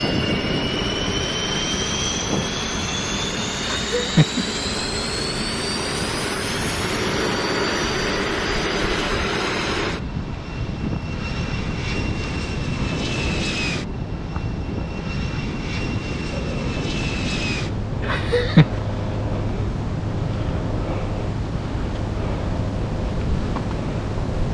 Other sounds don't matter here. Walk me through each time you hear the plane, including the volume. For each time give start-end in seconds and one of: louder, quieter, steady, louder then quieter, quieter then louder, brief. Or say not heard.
0.0-24.4 quieter.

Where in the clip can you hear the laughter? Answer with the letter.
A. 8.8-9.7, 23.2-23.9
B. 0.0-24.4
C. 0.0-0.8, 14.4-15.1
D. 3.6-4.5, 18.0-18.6
D.